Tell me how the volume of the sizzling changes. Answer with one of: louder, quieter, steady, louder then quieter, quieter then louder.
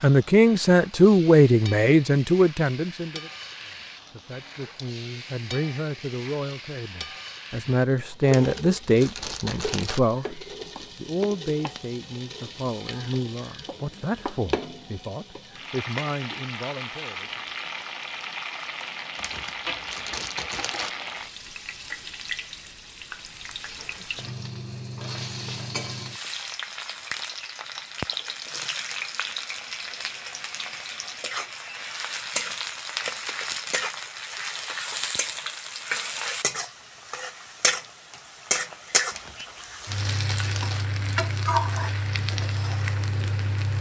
louder.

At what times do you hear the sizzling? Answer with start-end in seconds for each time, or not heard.
0.0-43.7.